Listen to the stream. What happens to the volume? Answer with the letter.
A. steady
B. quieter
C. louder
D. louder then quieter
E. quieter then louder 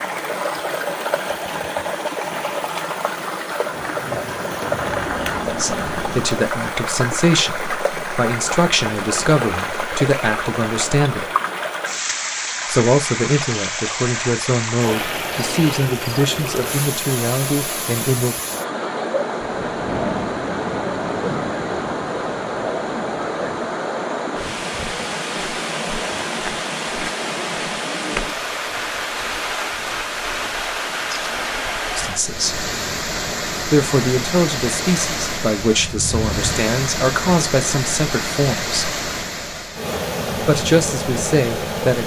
A.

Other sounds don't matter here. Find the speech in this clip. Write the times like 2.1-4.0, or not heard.
5.5-11.2, 12.7-18.4, 31.9-32.6, 33.6-38.9, 40.4-42.0.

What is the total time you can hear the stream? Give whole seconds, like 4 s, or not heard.
42 s.